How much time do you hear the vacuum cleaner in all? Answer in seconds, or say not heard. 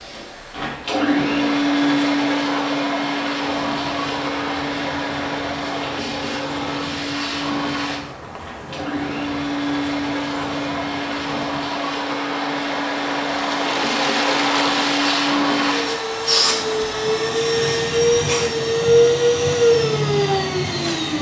21 s.